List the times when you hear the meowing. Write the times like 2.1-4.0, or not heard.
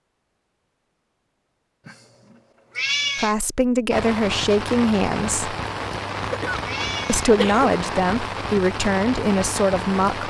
1.9-3.4, 6.7-7.3.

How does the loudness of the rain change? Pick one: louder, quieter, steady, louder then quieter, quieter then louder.
steady.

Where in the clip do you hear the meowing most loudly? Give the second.
3 s.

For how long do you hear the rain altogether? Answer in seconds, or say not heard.
6 s.